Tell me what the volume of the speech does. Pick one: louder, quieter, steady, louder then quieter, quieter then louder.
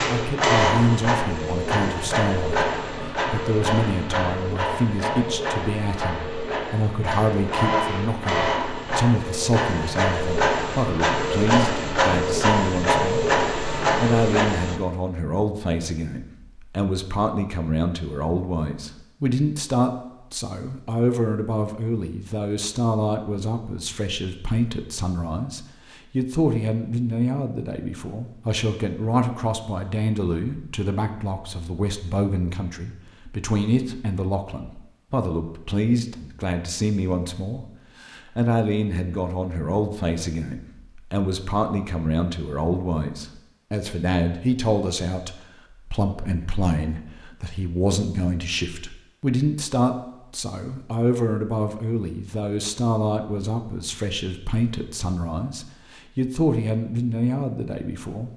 steady.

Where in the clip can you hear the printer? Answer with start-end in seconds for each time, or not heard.
0.0-14.8.